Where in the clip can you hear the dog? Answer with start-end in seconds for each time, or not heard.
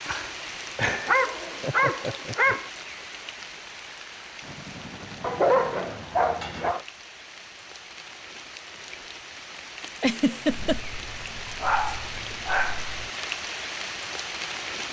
0.9-2.7, 5.2-6.8, 10.4-13.1.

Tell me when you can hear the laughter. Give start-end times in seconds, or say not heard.
0.8-2.5, 9.9-10.8.